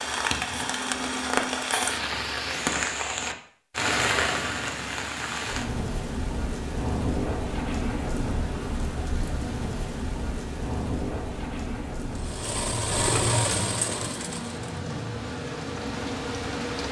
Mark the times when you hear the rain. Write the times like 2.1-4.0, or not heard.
0.0-16.8.